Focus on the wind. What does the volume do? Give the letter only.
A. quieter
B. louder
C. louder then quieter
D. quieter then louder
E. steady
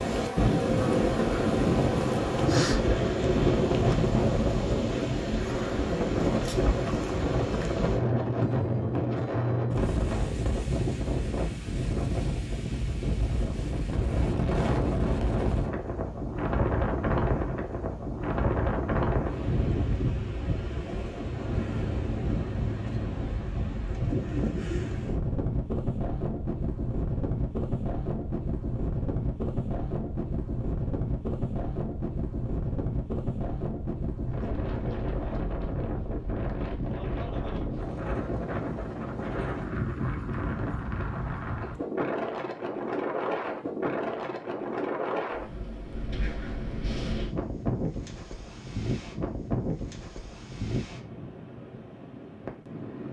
A.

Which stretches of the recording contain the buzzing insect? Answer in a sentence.
You can hear the buzzing insect from 0.0 to 2.5 s.